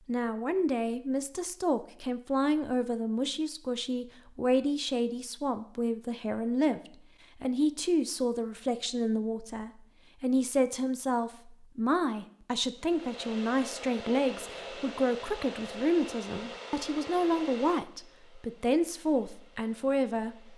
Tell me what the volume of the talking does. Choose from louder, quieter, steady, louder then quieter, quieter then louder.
steady.